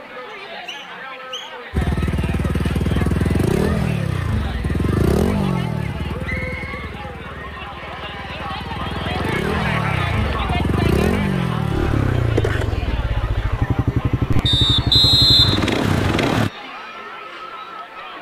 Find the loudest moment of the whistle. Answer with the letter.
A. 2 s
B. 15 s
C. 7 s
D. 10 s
B.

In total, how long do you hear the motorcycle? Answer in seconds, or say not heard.
15 s.